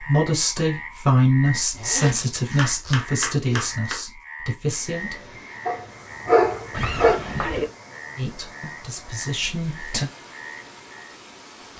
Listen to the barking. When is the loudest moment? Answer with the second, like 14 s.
6 s.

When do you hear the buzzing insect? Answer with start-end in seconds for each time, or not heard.
not heard.